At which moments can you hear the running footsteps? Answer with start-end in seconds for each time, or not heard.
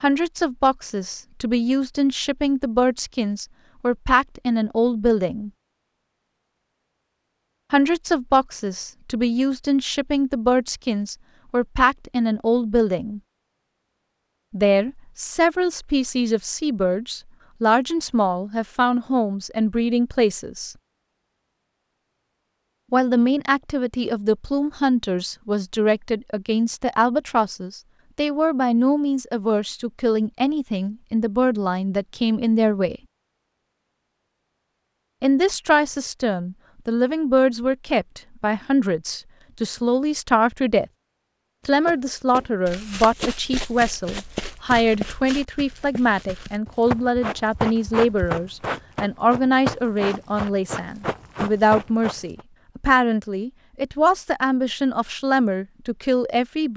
41.9-52.5.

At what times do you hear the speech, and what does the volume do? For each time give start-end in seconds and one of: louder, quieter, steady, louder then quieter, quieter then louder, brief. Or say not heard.
0.0-5.5 steady
7.7-13.2 steady
14.5-20.8 steady
22.9-33.0 steady
35.2-40.9 steady
41.6-56.7 steady.